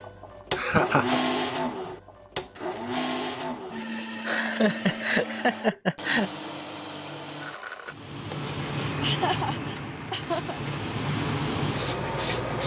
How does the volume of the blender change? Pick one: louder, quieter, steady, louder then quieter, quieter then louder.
quieter.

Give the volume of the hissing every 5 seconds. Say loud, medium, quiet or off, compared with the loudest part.
off, loud, loud.